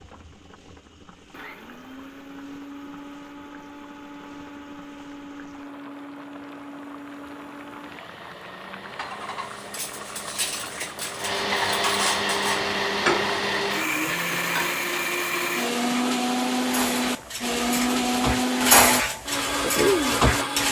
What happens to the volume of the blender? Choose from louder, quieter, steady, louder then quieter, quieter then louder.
louder.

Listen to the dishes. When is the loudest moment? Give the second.
19 s.